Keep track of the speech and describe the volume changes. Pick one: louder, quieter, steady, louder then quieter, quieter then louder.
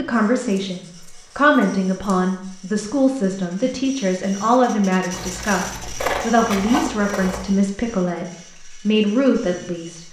steady.